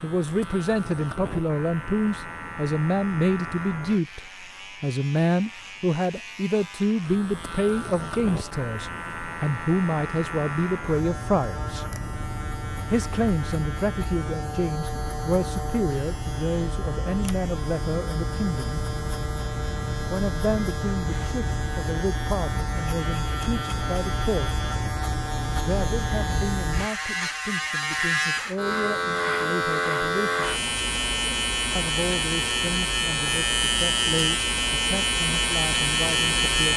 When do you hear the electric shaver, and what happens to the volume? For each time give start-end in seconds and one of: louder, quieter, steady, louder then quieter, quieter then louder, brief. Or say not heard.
0.0-36.7 louder.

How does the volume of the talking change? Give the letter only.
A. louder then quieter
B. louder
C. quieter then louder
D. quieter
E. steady
D.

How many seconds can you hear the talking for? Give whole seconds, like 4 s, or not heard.
32 s.